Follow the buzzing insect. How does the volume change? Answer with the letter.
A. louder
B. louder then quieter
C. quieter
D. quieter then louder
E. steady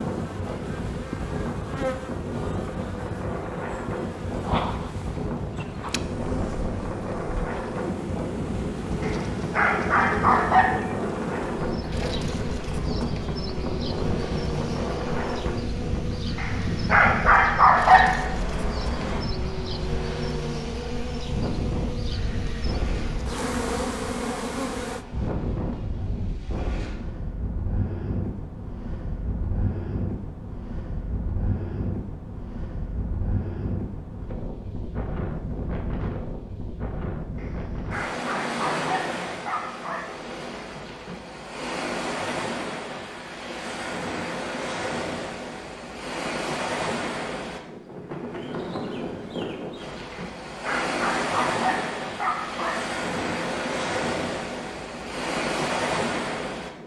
E.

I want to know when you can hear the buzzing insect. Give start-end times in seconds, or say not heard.
0.0-25.1.